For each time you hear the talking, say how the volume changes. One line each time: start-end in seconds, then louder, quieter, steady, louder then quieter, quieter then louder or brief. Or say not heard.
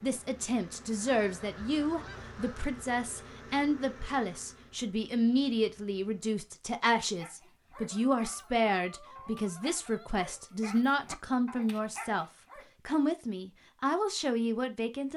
0.0-12.2 steady
12.8-15.1 brief.